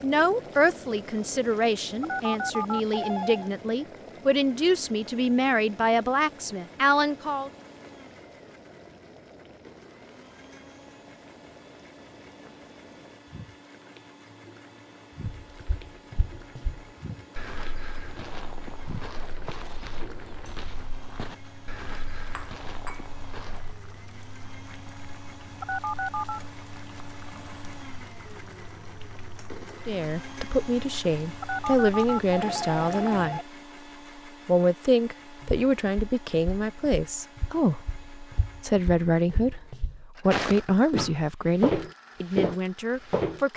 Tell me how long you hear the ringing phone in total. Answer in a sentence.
The ringing phone can be heard for 4 seconds in total.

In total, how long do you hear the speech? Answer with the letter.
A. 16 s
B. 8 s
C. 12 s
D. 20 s
D.